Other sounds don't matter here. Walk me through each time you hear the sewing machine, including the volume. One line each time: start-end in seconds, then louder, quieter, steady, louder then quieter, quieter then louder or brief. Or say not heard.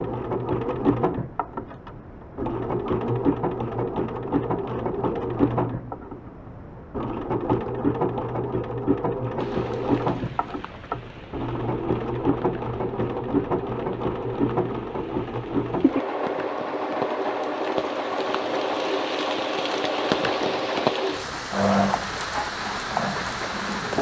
0.0-23.9 steady.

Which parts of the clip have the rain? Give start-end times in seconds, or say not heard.
9.3-23.9.